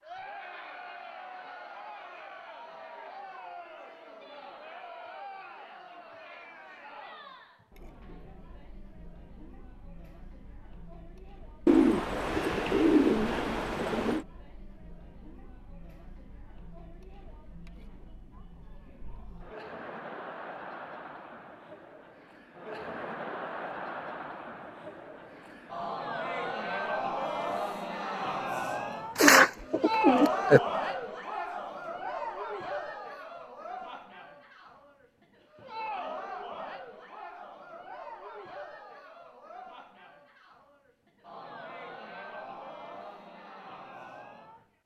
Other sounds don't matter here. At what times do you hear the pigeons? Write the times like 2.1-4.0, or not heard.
11.7-14.2, 29.1-30.6.